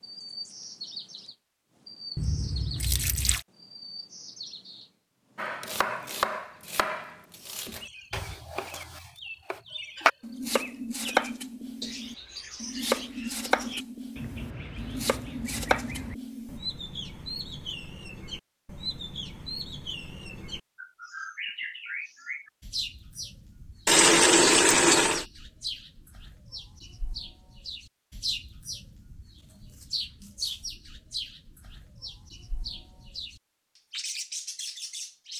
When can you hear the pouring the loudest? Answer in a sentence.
The loudest moment of the pouring is at 24 seconds.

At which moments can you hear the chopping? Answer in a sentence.
The chopping can be heard from 5.3 to 16.6 s.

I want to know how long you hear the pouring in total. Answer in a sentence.
You can hear the pouring for 3 seconds altogether.